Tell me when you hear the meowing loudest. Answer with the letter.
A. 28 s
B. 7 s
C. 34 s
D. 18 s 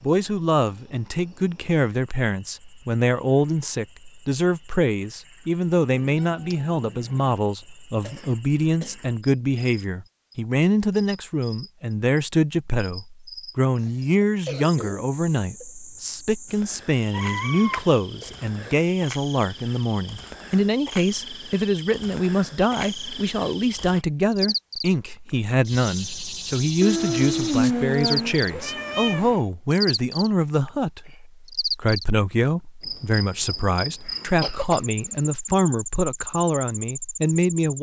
A.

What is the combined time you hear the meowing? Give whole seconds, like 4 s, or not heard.
6 s.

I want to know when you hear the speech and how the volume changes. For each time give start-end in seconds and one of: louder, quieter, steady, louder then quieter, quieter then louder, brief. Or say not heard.
0.0-37.7 steady.